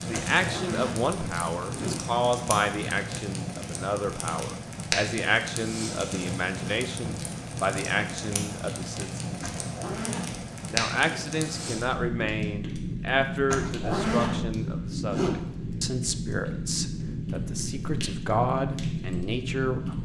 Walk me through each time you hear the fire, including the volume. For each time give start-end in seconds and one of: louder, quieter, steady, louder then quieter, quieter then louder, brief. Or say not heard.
0.0-20.0 steady.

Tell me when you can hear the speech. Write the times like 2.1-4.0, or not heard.
0.0-9.2, 10.7-20.0.